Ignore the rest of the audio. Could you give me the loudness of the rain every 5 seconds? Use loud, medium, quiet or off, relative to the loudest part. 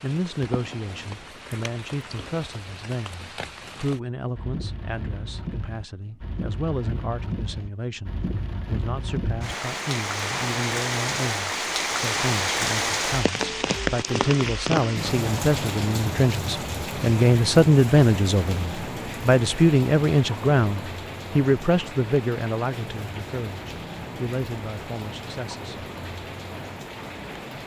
quiet, medium, loud, medium, medium, medium.